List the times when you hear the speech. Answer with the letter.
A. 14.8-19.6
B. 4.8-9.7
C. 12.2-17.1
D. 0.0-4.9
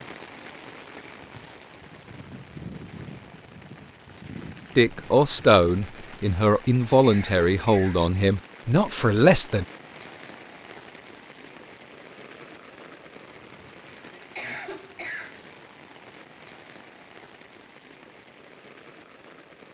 B.